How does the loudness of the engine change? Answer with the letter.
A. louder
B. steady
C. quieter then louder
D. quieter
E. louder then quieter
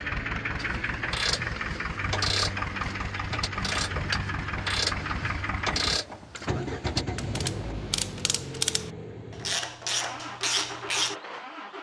D.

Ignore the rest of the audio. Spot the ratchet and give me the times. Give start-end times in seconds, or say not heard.
0.6-11.2.